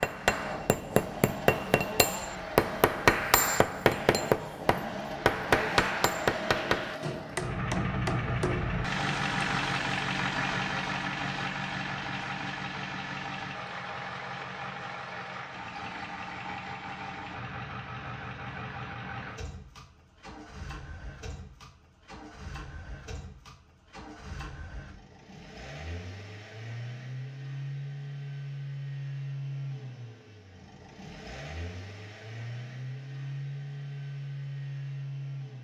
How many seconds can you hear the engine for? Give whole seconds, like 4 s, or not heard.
35 s.